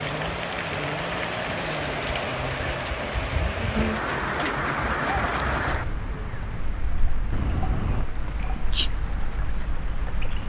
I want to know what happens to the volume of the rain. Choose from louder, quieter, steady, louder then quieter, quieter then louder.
quieter.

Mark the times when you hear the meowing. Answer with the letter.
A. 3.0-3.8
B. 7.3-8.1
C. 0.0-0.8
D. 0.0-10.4
B.